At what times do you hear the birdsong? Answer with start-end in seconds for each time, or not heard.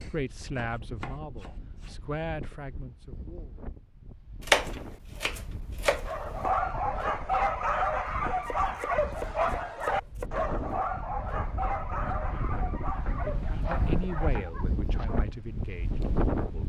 not heard.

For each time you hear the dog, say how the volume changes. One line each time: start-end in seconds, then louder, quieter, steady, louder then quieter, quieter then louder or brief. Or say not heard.
6.0-15.2 quieter.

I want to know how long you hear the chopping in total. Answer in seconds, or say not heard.
8 s.